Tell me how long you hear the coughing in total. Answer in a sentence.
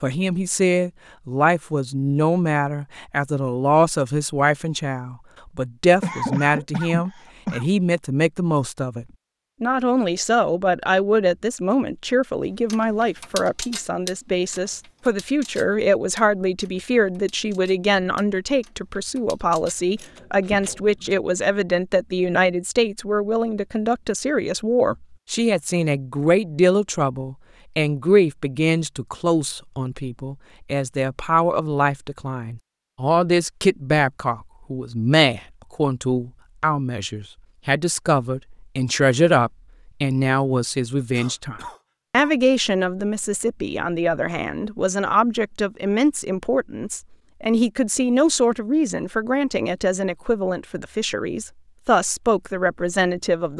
The coughing can be heard for 3 seconds in total.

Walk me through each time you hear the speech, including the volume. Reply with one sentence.
The speech can be heard from 0.0 to 53.5 s, at a steady volume.